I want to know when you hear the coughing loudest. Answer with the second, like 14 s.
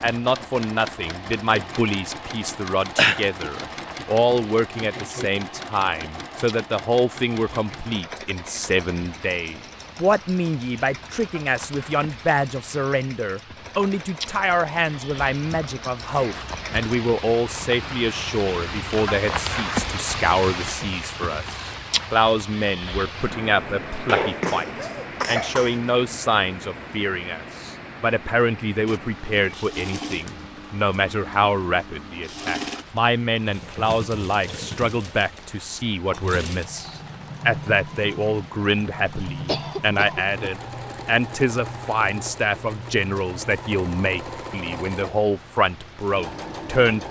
3 s.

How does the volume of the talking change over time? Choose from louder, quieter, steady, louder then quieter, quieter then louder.
steady.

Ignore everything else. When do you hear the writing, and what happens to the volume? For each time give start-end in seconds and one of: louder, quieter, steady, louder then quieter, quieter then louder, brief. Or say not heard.
not heard.